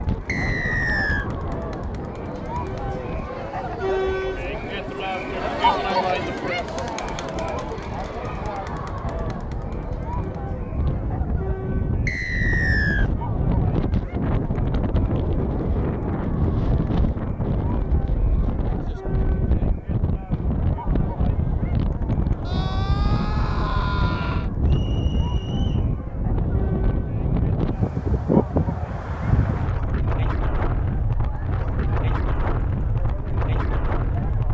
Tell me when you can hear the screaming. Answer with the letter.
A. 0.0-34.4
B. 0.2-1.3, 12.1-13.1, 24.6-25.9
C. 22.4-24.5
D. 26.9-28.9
C.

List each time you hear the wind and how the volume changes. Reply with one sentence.
You can hear the wind from 0.0 to 34.4 s, getting louder.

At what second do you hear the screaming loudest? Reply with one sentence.
The volume of the screaming peaks at 24 seconds.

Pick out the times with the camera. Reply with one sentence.
You can't hear the camera here.